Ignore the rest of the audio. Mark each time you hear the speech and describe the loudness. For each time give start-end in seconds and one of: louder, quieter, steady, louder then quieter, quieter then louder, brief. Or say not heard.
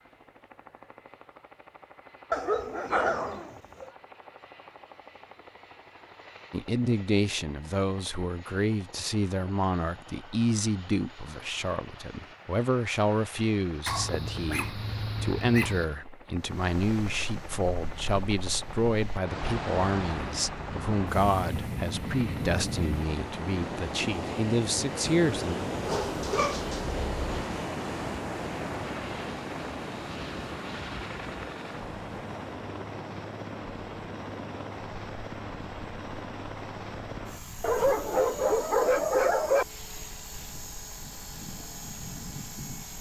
6.5-25.6 steady.